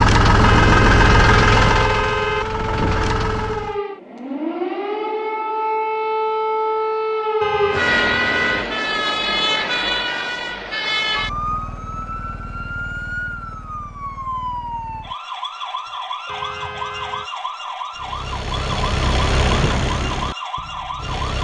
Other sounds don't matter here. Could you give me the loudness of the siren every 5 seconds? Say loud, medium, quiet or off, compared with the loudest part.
medium, loud, medium, medium, medium.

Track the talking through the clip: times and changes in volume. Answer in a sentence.
You can't hear the talking here.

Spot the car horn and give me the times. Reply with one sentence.
You can hear the car horn from 0.4 to 2.5 s, from 7.4 to 8.7 s and from 16.2 to 17.3 s.